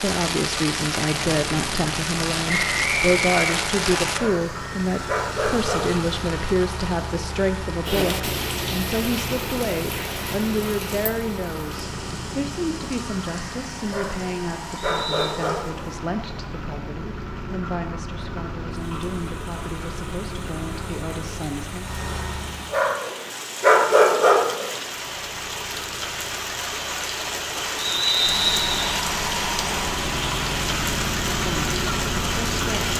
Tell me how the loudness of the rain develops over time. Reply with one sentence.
The volume of the rain goes down, then up.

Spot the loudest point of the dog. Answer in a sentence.
The loudest moment of the dog is at 24 seconds.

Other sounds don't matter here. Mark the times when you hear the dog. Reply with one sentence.
The dog can be heard from 4.0 to 6.0 s, from 13.8 to 15.9 s and from 22.4 to 24.8 s.